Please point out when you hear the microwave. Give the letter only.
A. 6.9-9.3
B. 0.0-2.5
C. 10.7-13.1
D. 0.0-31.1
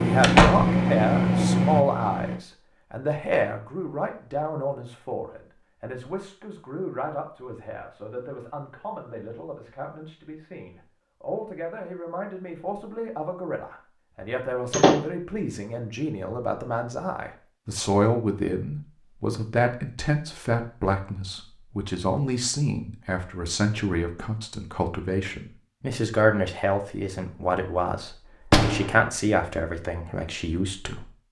B.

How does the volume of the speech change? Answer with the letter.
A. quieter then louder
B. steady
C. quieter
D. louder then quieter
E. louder
A.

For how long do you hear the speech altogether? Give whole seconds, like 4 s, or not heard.
31 s.